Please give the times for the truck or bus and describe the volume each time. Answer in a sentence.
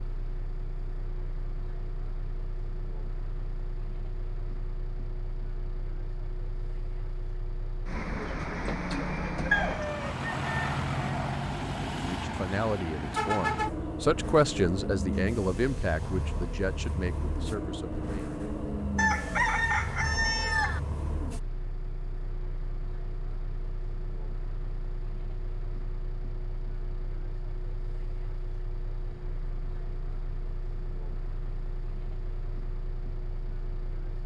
The truck or bus can be heard from 0.0 to 34.2 s, getting louder then quieter.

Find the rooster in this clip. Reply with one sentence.
The rooster can be heard from 9.5 to 11.3 s and from 18.9 to 20.8 s.